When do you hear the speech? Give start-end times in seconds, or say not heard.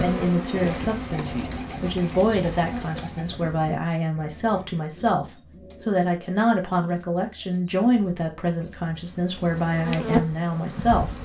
0.0-11.1.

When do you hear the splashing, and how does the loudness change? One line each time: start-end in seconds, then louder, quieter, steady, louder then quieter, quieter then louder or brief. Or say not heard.
not heard.